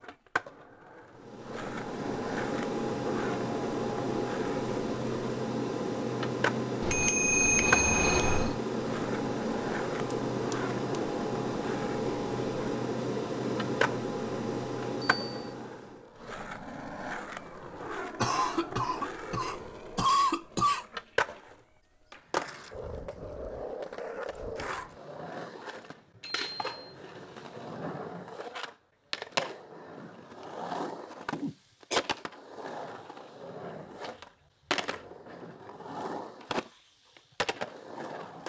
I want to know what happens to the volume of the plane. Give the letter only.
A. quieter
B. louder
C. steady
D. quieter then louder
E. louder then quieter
C.